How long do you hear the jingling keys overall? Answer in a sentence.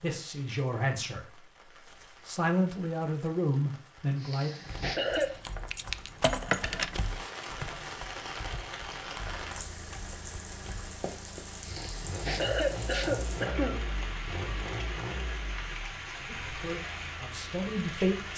You can hear the jingling keys for 2 seconds altogether.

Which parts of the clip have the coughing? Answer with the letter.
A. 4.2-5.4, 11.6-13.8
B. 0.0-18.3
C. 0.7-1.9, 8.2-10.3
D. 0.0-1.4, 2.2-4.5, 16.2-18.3
A.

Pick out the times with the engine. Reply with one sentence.
The engine can be heard from 9.2 to 18.3 s.